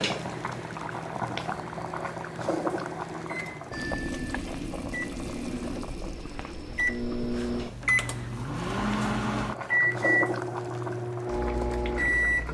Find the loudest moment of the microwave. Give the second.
10 s.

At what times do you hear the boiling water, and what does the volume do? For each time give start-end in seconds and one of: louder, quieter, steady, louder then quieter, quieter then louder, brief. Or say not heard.
0.0-12.4 quieter then louder.